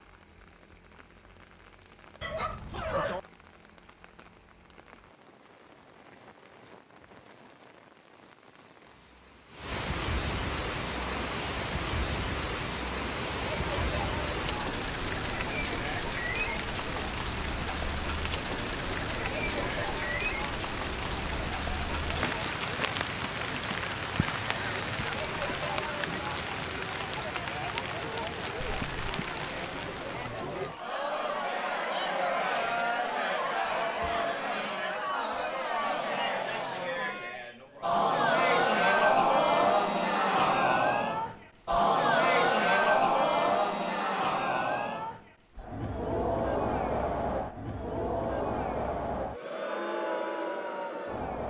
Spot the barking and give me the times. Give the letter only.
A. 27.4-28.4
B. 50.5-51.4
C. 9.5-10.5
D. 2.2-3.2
D.